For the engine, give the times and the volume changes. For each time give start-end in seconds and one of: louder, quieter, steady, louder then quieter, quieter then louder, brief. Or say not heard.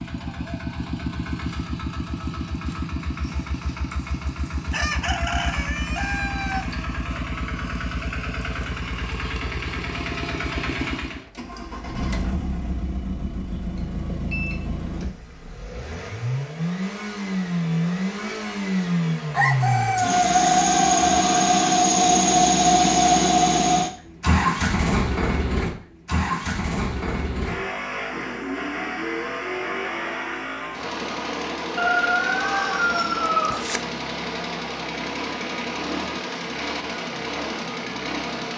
0.0-38.5 louder then quieter.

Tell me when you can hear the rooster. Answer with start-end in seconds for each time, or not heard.
4.7-6.7, 19.3-21.2, 31.8-33.8.